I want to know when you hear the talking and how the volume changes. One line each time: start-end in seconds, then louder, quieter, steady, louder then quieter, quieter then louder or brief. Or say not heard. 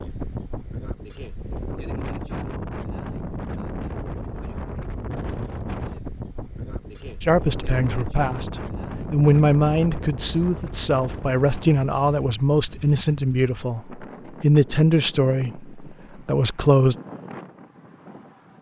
7.2-16.9 steady.